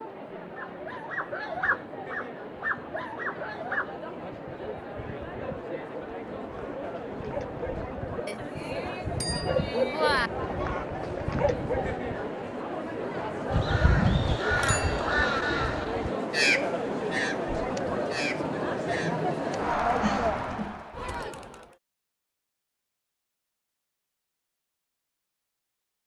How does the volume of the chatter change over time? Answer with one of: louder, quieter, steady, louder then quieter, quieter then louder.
louder.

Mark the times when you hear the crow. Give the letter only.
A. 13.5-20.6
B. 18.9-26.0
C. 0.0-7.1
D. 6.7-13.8
A.